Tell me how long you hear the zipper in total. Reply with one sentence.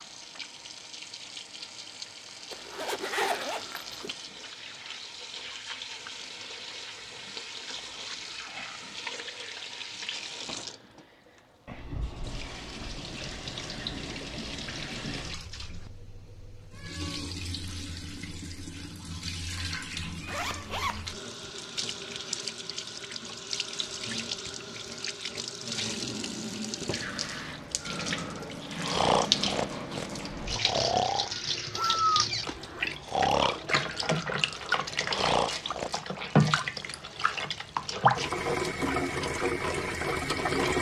The zipper can be heard for 4 seconds in total.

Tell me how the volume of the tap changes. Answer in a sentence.
The loudness of the tap goes up.